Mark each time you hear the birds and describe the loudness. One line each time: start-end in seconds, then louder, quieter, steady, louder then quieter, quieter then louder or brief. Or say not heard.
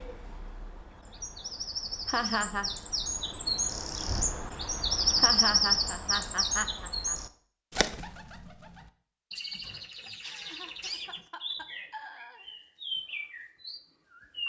0.0-14.4 louder then quieter.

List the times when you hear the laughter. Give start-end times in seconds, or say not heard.
2.0-2.7, 5.2-7.2, 10.2-12.7.